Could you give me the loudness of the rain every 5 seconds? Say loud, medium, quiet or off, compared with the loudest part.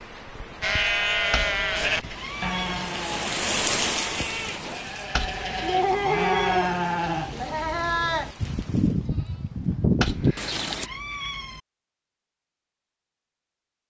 loud, quiet, off.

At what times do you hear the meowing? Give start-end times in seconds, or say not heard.
1.3-2.9, 5.2-6.8, 10.0-11.6.